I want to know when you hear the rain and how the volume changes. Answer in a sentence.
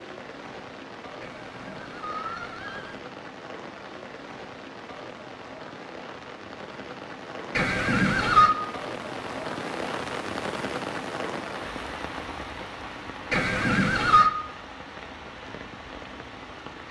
You can hear the rain from 0.0 to 16.8 s, getting louder then quieter.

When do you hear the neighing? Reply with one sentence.
The neighing can be heard from 1.2 to 3.0 s, from 7.5 to 8.6 s and from 13.3 to 14.3 s.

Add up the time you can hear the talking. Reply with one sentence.
You can't hear the talking here.